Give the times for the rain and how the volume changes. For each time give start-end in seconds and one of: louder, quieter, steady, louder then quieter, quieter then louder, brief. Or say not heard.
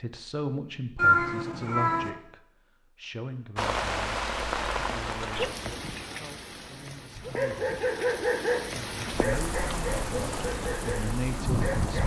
3.5-12.0 quieter then louder.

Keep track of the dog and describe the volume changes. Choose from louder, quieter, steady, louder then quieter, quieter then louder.
quieter.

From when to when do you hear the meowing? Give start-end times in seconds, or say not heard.
0.9-2.1.